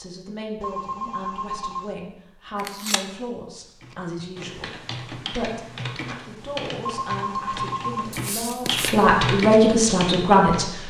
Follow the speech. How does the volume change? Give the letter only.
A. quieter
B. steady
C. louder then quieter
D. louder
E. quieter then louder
D.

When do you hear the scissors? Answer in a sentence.
You can hear the scissors from 2.5 to 3.0 s and from 8.1 to 9.1 s.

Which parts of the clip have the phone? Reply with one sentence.
The phone can be heard from 0.6 to 1.9 s and from 6.8 to 8.2 s.